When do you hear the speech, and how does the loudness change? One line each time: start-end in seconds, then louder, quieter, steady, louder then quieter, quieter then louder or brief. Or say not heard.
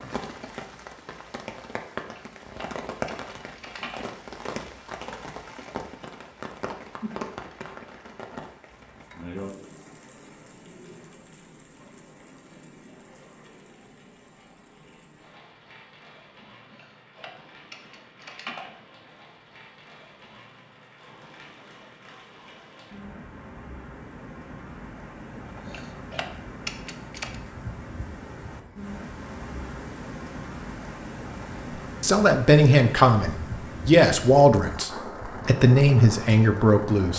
32.0-37.1 steady.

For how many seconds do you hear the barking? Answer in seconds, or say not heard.
not heard.